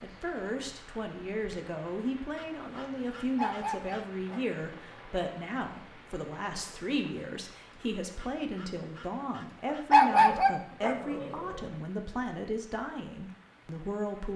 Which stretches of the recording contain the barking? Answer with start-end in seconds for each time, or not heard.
3.4-5.0, 9.7-11.4.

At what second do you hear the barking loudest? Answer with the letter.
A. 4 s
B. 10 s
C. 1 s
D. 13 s
B.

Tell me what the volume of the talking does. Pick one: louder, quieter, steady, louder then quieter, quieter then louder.
steady.